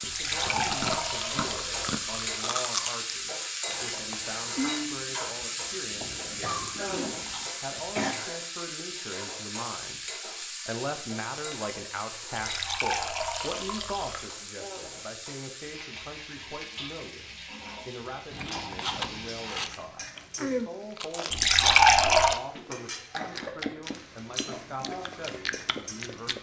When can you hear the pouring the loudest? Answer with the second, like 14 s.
22 s.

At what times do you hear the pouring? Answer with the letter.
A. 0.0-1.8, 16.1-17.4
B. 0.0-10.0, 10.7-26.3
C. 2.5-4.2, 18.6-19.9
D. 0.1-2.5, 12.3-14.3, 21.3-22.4
D.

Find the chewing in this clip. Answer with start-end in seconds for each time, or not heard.
0.0-7.5, 18.3-26.3.